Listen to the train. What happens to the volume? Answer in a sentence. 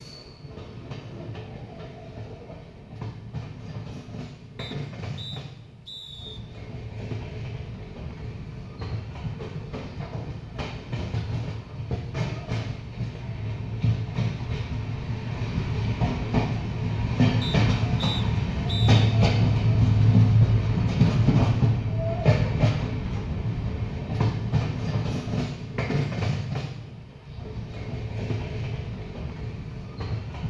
The volume of the train goes up, then down.